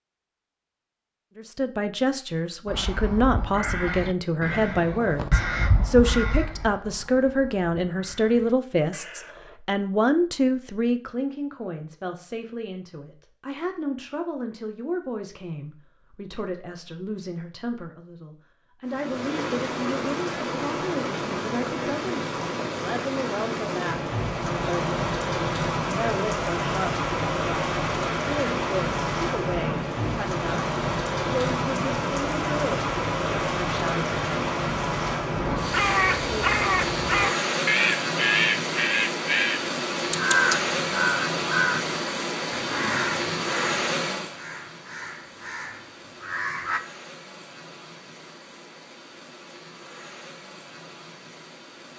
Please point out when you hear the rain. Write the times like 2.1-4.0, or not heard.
18.9-51.9.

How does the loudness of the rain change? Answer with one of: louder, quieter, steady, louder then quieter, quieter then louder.
quieter.